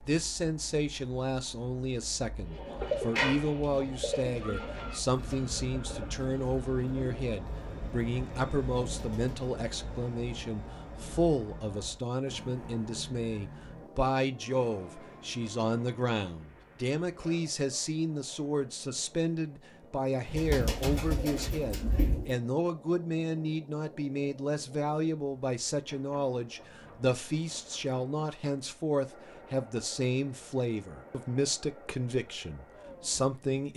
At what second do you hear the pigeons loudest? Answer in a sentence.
The loudest moment of the pigeons is at 3 seconds.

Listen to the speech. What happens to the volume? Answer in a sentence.
The loudness of the speech stays about the same.